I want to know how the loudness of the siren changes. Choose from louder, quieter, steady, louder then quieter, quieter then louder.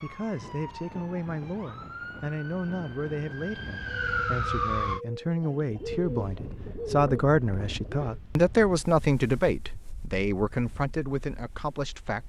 louder.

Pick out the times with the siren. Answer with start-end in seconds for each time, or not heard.
0.0-5.0.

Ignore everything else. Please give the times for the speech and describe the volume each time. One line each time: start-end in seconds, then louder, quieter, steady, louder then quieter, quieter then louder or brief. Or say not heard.
0.0-12.2 louder then quieter.